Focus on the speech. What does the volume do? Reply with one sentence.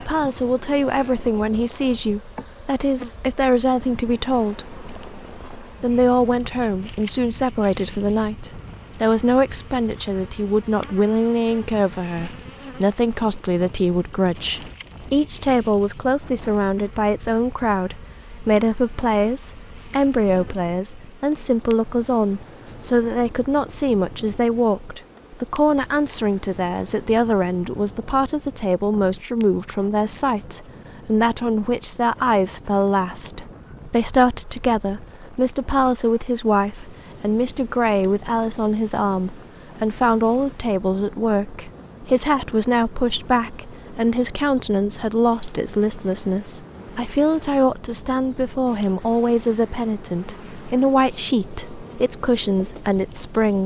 The loudness of the speech stays about the same.